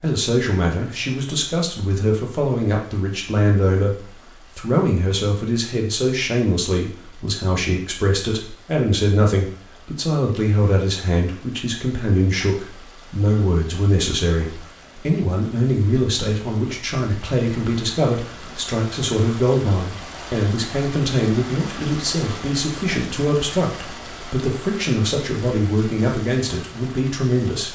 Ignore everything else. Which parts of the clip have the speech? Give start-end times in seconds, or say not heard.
0.0-27.7.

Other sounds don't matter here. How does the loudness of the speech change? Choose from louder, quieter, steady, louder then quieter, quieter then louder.
steady.